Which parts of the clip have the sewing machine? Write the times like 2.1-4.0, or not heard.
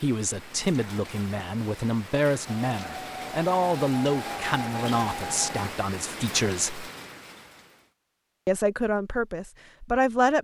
2.5-5.8.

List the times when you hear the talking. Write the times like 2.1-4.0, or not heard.
0.0-6.9, 8.4-10.3.